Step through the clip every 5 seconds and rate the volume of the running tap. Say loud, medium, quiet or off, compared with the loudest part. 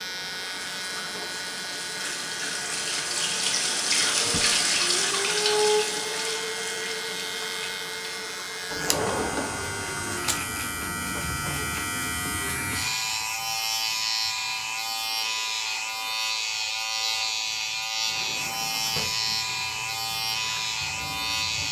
loud, loud, quiet, quiet, quiet.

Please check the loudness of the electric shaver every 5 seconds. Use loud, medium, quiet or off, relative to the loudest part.
medium, medium, loud, loud, loud.